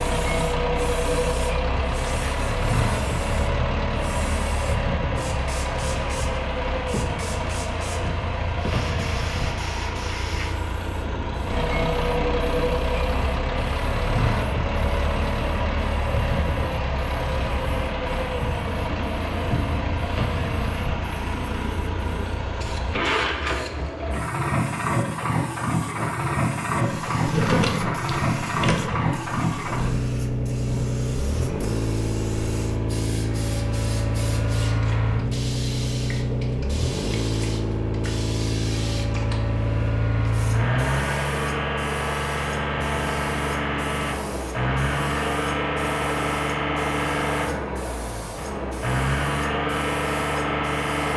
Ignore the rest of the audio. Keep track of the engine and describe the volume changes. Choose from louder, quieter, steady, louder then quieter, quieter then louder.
steady.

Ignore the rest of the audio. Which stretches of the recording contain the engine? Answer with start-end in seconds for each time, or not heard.
0.0-51.1.